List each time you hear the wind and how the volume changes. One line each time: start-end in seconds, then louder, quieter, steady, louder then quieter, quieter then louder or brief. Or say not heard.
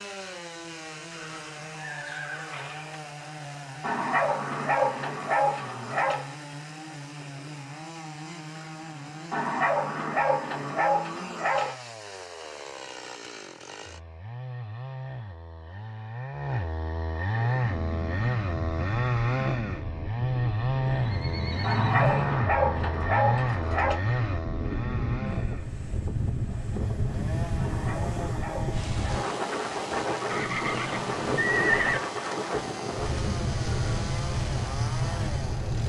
17.2-35.8 louder.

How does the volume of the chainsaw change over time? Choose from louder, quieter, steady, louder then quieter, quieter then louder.
louder then quieter.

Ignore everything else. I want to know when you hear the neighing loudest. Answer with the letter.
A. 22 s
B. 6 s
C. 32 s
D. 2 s
C.